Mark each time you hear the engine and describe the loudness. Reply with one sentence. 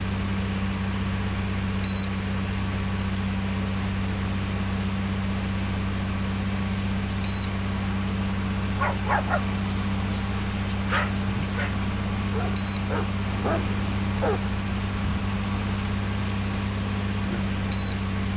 You can hear the engine from 0.0 to 18.3 s, at a steady volume.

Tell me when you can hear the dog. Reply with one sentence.
You can hear the dog from 8.8 to 14.5 s.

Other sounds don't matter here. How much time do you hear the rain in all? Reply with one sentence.
The rain can be heard for 18 seconds in total.